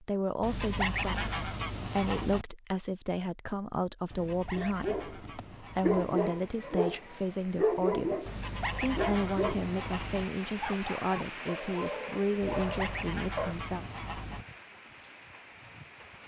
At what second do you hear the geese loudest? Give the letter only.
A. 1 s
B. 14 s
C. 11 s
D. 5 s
A.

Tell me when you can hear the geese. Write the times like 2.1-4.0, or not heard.
0.4-2.5, 4.1-6.0, 8.2-10.2, 12.4-14.4.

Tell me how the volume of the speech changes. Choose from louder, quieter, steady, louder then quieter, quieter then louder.
steady.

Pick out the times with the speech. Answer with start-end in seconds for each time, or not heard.
0.0-13.8.